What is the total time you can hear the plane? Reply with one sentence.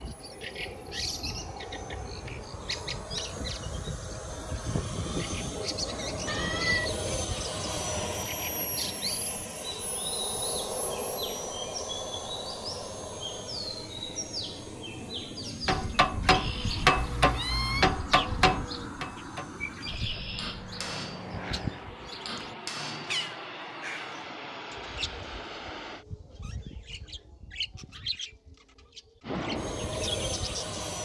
You can hear the plane for 28 seconds altogether.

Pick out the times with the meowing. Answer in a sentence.
The meowing can be heard from 6.2 to 6.9 s and from 16.9 to 17.9 s.